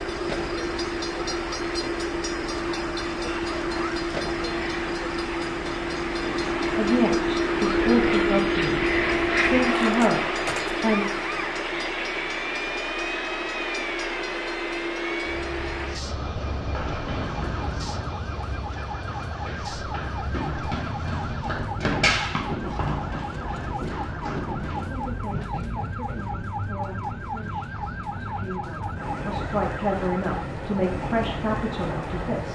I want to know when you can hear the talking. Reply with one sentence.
You can hear the talking from 6.7 to 11.1 s and from 24.8 to 32.4 s.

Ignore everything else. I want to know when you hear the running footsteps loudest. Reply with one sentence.
The volume of the running footsteps peaks at 22 seconds.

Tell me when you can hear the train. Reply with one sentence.
The train can be heard from 0.0 to 32.4 s.